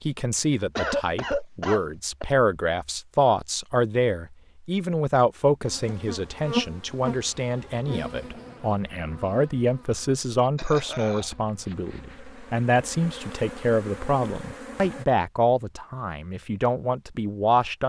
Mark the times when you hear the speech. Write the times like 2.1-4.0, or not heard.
0.0-17.8.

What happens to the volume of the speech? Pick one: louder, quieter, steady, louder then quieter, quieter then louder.
steady.